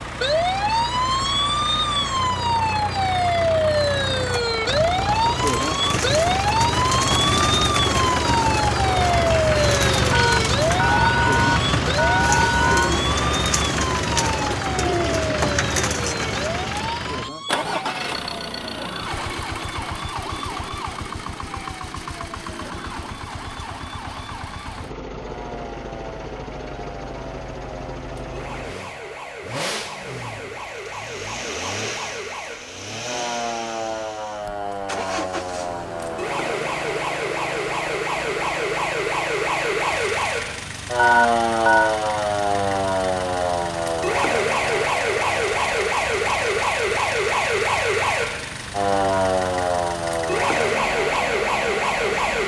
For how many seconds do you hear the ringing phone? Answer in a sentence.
The ringing phone can be heard for 4 seconds in total.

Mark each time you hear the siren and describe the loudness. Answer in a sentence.
You can hear the siren from 0.0 to 52.4 s, getting quieter then louder.